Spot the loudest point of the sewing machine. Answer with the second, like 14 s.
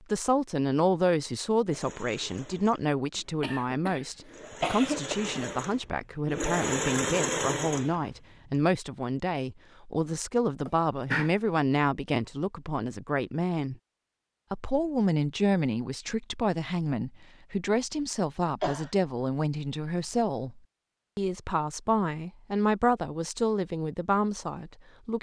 7 s.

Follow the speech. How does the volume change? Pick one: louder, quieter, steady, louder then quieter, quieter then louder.
steady.